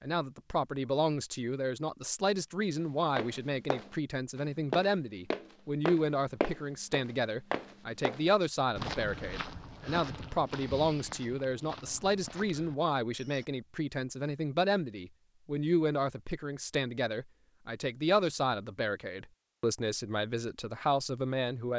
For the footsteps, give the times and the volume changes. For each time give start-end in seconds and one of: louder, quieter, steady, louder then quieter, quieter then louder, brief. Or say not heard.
3.1-13.4 quieter.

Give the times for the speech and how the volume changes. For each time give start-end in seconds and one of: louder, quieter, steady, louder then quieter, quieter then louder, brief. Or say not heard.
0.0-21.7 steady.